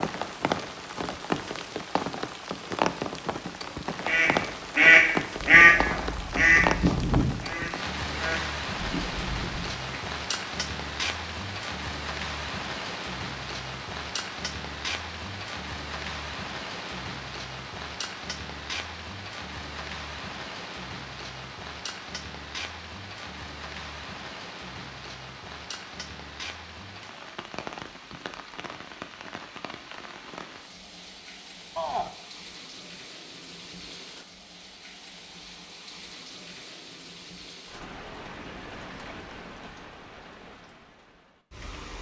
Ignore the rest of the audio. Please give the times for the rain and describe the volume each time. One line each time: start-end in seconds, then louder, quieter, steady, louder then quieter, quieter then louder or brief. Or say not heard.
0.0-41.9 quieter.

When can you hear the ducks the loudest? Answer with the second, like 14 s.
6 s.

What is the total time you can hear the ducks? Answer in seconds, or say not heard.
6 s.